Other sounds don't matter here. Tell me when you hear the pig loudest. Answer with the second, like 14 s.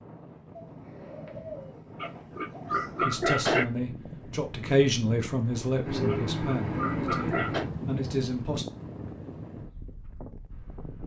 3 s.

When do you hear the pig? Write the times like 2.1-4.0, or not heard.
2.0-3.6, 6.0-7.7.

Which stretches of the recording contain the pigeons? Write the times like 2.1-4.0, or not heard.
0.7-3.0, 5.8-7.7.